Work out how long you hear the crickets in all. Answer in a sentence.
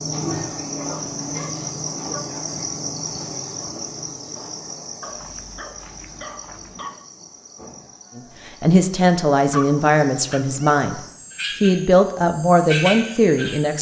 The crickets can be heard for 14 seconds in total.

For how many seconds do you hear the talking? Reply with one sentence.
You can hear the talking for 5 seconds altogether.